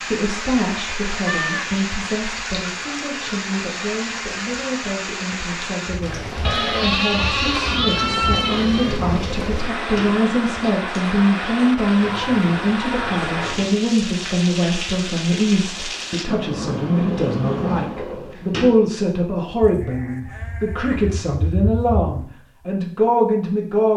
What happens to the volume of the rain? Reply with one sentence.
The loudness of the rain stays about the same.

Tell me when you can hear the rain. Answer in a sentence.
You can hear the rain from 0.0 to 16.2 s.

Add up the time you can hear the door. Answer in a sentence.
You can hear the door for 5 seconds altogether.